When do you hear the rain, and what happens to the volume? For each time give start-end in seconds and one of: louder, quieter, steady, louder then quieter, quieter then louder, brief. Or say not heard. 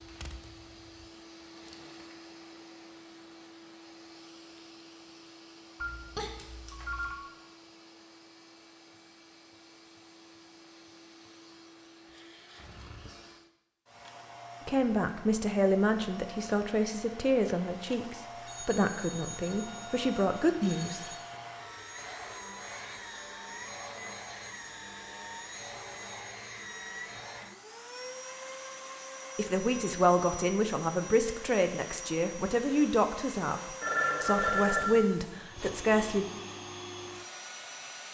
not heard.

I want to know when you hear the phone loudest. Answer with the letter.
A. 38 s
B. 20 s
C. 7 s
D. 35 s
D.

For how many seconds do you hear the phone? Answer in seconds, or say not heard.
5 s.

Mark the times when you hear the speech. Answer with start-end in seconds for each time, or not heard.
14.7-21.1, 29.4-36.2.